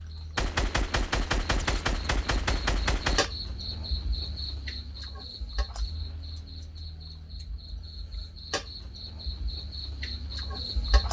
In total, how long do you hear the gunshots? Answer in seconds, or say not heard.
3 s.